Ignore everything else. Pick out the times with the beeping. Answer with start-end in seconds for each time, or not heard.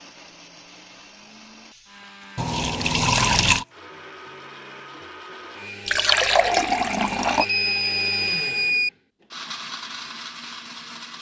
7.4-8.9.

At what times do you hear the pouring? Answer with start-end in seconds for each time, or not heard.
2.4-3.6, 5.8-7.5.